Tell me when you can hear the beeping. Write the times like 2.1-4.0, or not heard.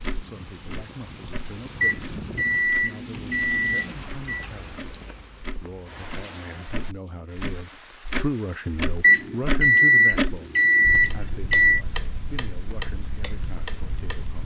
1.8-4.5, 9.0-11.8.